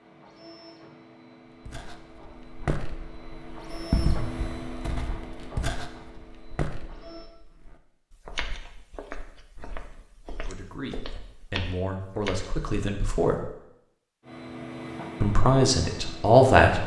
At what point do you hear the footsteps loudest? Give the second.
4 s.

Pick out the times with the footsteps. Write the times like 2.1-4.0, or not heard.
1.6-12.5.